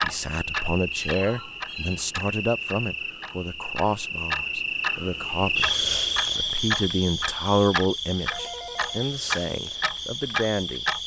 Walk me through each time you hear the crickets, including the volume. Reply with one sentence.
You can hear the crickets from 0.0 to 11.0 s, getting louder then quieter.